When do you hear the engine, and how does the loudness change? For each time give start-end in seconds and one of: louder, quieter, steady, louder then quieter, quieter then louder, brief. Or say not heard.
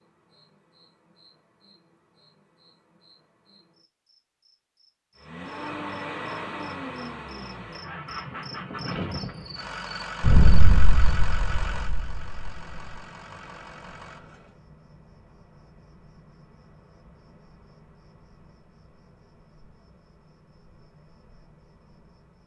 5.2-14.6 quieter.